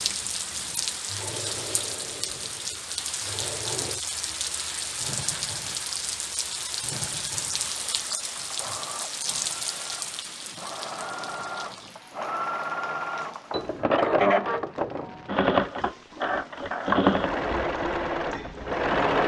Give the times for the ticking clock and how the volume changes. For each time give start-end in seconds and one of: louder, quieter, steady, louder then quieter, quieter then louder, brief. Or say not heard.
not heard.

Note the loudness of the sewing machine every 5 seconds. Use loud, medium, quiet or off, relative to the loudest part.
quiet, quiet, loud, loud.